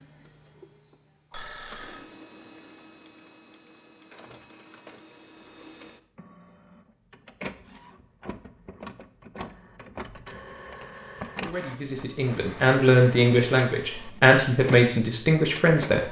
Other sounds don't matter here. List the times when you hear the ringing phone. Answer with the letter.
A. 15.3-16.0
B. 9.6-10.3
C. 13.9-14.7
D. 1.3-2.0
D.